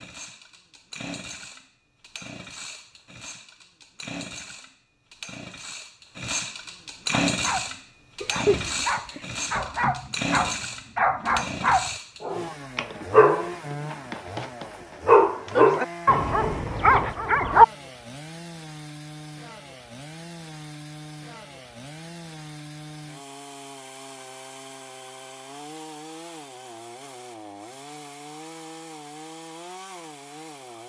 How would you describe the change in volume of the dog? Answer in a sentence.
The loudness of the dog goes up.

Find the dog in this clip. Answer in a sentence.
The dog can be heard from 7.1 to 17.6 s.